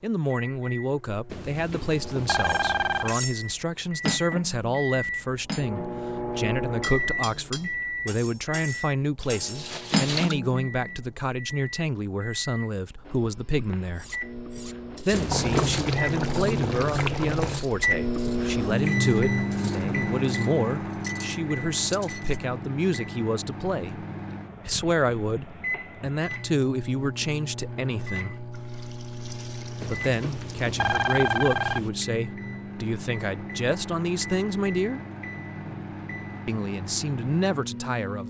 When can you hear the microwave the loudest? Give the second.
19 s.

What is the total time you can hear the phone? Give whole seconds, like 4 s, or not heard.
5 s.